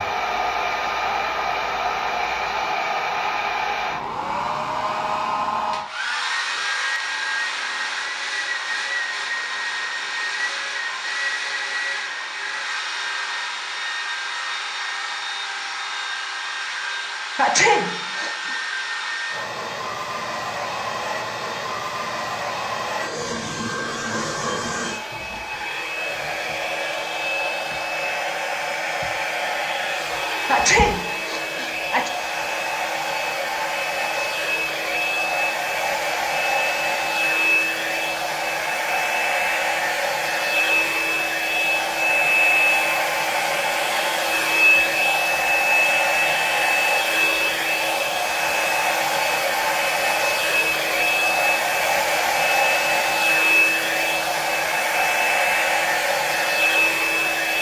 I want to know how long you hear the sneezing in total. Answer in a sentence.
The sneezing can be heard for 3 seconds in total.